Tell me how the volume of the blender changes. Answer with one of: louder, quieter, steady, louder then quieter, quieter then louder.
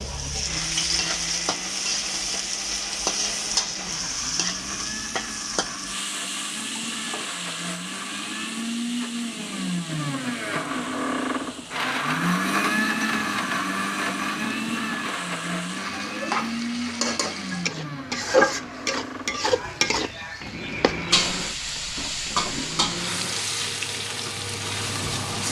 louder then quieter.